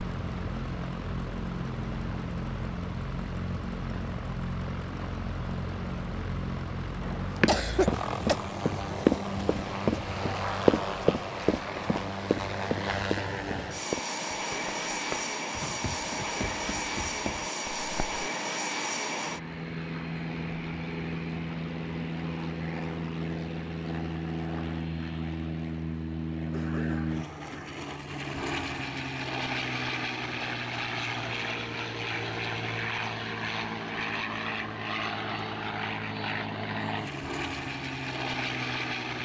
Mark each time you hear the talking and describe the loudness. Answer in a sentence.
The talking can't be heard in this clip.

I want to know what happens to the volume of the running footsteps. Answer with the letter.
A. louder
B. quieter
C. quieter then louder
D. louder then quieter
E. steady
B.